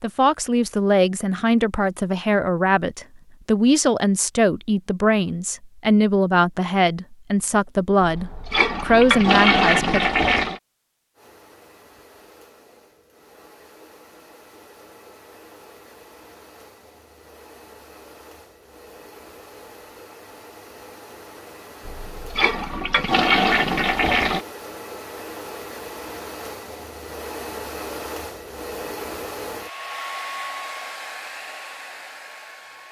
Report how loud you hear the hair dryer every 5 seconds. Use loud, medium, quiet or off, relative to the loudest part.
off, off, quiet, quiet, medium, loud, loud.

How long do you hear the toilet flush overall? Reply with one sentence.
You can hear the toilet flush for 5 seconds altogether.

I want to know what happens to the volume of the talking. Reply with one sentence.
The loudness of the talking stays about the same.